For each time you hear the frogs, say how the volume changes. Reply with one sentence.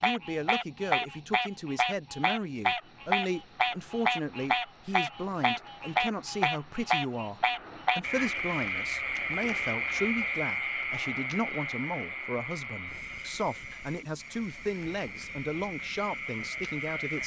You can hear the frogs from 0.0 to 17.2 s, getting quieter.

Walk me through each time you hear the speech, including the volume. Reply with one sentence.
The speech can be heard from 0.0 to 17.2 s, at a steady volume.